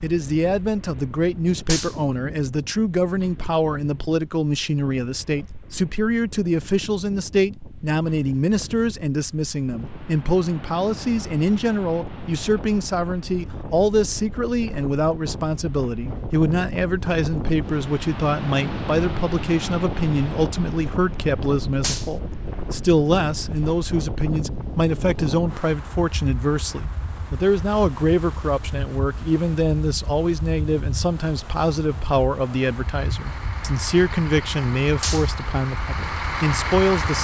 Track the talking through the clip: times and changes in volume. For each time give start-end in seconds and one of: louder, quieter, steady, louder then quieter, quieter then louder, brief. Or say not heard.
0.0-37.1 steady.